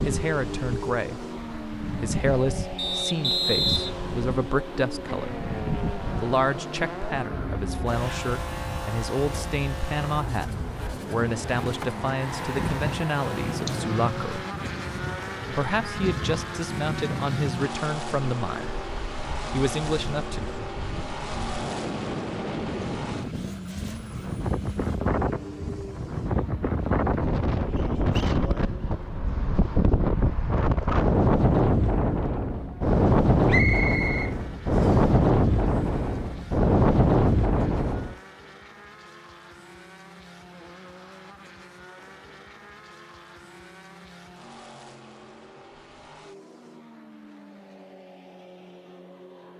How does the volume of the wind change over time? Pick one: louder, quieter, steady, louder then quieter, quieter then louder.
louder.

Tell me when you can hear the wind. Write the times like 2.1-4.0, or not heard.
0.0-38.1.